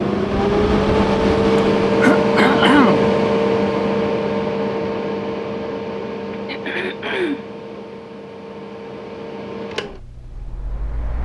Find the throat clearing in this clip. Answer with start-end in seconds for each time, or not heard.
1.6-3.1, 6.3-7.5.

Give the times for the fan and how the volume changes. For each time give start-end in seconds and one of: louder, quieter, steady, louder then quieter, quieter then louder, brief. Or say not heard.
0.0-11.2 quieter.